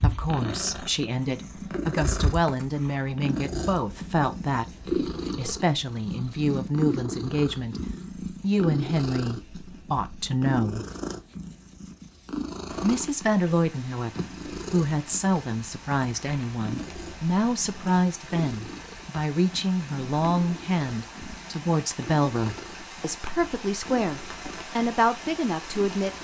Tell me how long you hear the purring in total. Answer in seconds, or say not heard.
26 s.